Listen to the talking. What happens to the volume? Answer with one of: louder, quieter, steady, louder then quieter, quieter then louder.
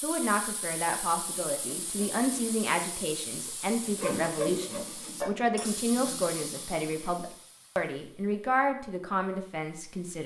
steady.